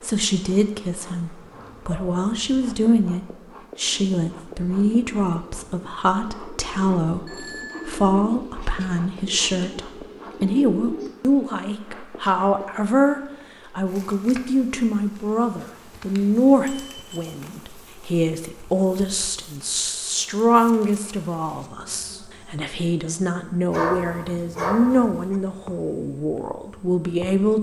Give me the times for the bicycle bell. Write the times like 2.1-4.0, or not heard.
7.2-8.0, 16.6-17.2.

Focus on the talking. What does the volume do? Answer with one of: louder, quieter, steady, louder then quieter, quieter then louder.
steady.